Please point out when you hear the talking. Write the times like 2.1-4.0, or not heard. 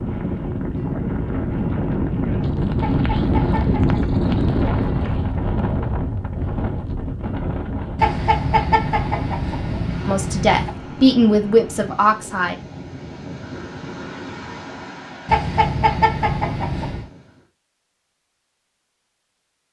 10.1-12.6.